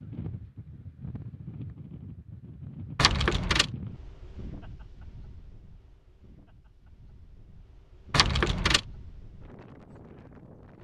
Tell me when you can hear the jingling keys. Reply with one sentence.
You can hear the jingling keys from 3.0 to 3.7 s and from 8.1 to 8.8 s.